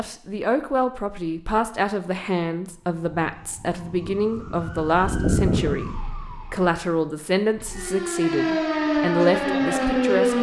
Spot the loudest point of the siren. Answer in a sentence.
The volume of the siren peaks at 10 seconds.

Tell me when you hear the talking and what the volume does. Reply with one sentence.
The talking can be heard from 0.0 to 10.3 s, at a steady volume.